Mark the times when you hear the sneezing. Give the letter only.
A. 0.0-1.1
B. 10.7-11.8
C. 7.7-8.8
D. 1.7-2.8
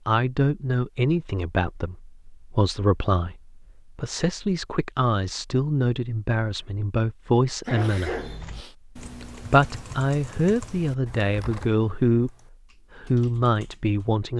C.